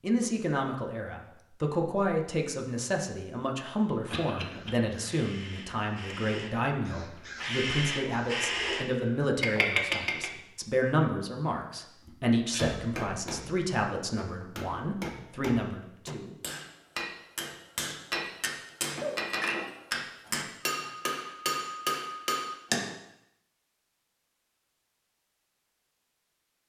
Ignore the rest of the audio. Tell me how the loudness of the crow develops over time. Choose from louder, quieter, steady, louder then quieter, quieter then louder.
louder.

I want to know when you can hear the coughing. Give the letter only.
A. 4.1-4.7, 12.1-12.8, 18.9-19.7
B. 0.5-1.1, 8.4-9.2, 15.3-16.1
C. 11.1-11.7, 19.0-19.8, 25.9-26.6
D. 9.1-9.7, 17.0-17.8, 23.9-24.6
A.